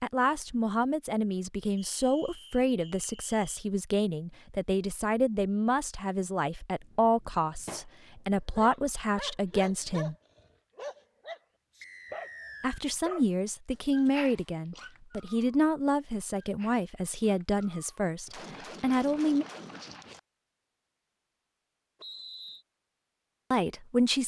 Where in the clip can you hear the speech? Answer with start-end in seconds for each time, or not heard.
0.0-10.2, 12.6-19.4, 23.5-24.2.